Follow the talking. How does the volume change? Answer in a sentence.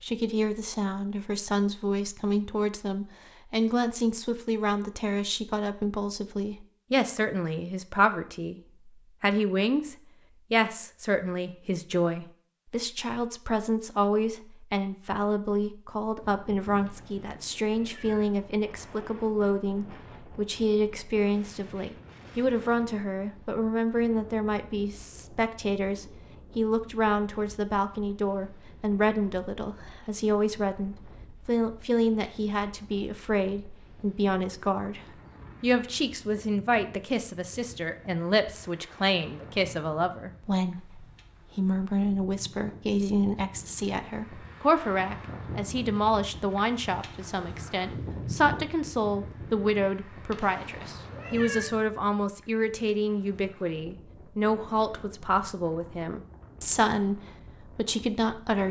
The loudness of the talking stays about the same.